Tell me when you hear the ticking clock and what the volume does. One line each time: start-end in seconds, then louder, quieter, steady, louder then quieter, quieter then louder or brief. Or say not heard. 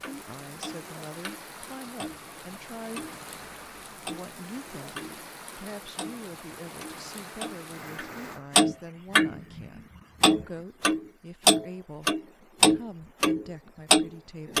0.0-5.2 quieter then louder
6.0-14.5 louder.